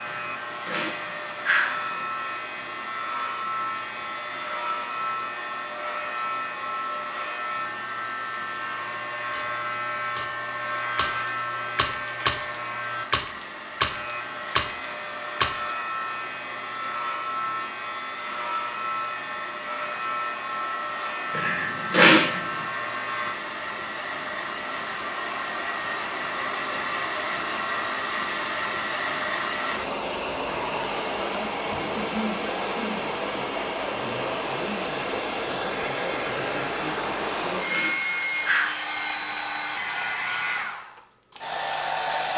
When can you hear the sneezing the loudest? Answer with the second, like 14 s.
22 s.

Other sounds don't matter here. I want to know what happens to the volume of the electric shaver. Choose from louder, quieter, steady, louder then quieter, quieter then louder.
steady.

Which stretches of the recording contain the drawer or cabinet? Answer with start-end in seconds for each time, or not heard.
not heard.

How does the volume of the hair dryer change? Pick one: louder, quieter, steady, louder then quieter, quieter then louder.
louder.